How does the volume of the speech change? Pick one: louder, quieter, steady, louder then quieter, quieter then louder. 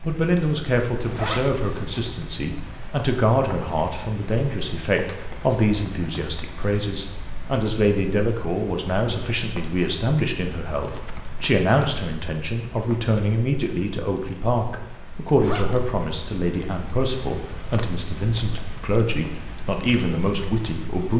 steady.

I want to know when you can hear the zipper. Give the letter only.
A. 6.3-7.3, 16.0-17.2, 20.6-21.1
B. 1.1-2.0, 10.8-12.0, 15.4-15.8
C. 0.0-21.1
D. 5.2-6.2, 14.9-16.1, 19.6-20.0
B.